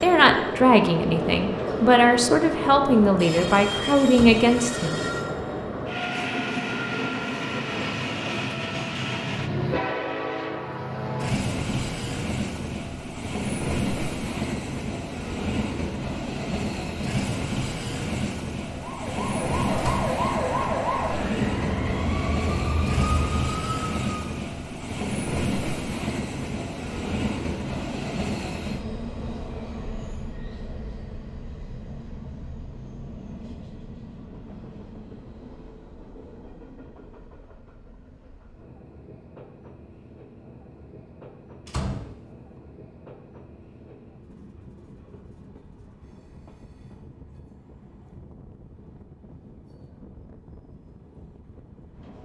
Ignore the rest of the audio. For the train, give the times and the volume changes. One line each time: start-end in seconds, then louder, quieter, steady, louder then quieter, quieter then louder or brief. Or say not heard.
0.0-52.1 quieter.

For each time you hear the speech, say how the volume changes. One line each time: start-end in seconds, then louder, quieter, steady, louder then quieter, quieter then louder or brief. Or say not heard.
0.0-5.0 steady.